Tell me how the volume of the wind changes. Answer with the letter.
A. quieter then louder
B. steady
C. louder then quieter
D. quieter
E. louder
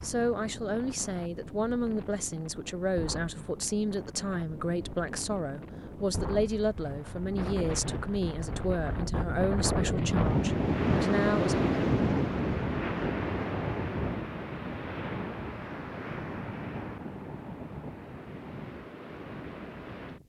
C.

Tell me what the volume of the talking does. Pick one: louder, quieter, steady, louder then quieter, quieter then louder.
steady.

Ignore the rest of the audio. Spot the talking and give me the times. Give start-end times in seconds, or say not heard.
0.0-11.6.